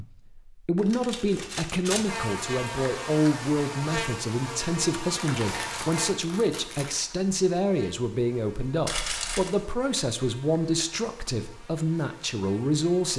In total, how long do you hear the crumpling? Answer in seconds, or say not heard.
4 s.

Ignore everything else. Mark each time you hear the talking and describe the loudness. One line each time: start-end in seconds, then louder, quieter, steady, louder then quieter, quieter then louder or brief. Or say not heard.
0.0-13.1 steady.